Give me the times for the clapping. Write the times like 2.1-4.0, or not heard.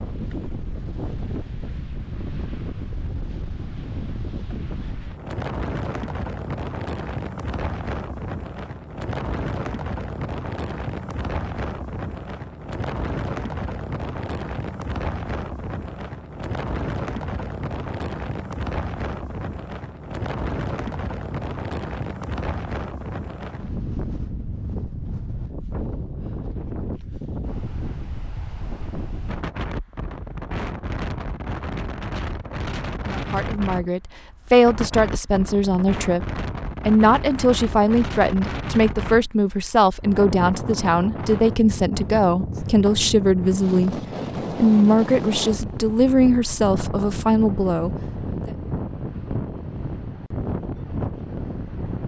not heard.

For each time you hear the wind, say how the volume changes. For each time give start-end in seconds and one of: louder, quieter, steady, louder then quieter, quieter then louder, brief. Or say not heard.
0.0-52.0 steady.